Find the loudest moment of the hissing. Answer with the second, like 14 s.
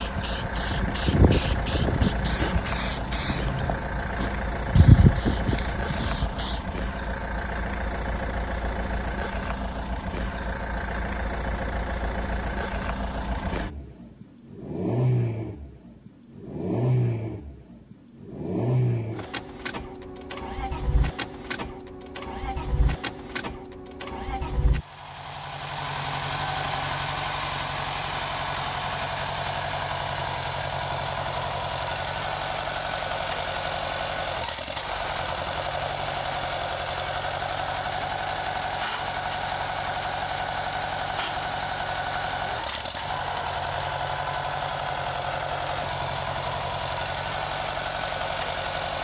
5 s.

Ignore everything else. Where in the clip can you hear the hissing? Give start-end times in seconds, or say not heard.
0.0-6.6.